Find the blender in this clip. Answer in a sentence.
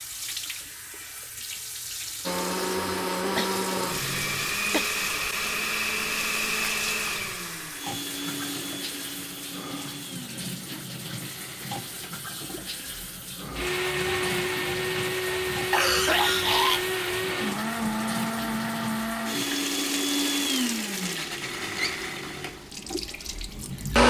You can hear the blender from 2.2 to 24.0 s.